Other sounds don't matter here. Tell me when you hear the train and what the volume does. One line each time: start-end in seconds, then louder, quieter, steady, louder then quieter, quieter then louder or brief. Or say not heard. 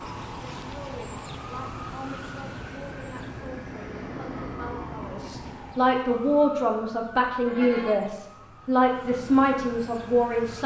0.0-5.8 louder.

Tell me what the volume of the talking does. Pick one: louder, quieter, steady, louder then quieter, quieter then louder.
louder.